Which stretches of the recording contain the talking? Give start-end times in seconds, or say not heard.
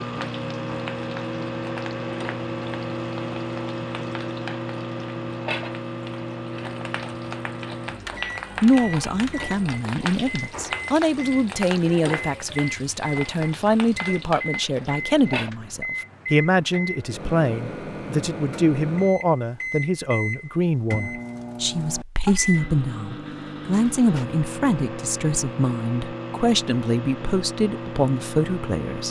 8.6-29.0.